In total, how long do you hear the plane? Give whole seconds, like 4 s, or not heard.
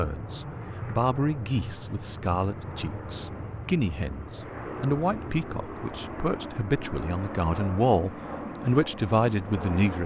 10 s.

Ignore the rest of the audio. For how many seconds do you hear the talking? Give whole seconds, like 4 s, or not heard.
10 s.